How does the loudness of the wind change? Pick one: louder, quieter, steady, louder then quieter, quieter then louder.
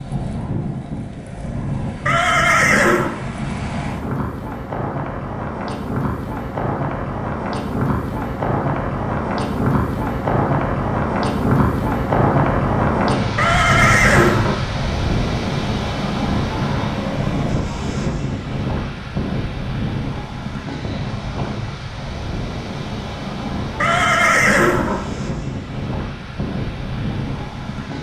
louder then quieter.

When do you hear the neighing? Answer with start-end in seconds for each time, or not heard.
2.0-3.2, 13.3-14.6, 23.8-25.1.